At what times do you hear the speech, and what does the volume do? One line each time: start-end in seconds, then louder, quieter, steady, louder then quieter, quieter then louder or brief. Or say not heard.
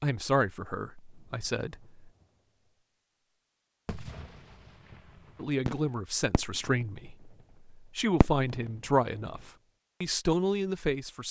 0.0-2.1 brief
5.3-11.2 quieter then louder.